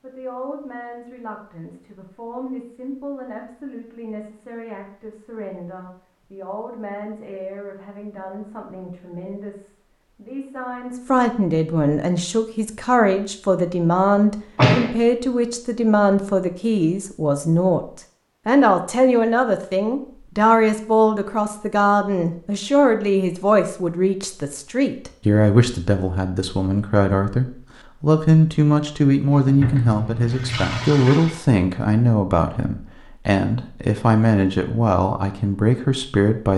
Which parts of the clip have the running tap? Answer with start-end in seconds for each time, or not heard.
29.3-31.4.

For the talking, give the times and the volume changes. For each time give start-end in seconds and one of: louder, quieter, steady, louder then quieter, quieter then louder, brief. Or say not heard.
0.0-36.5 louder.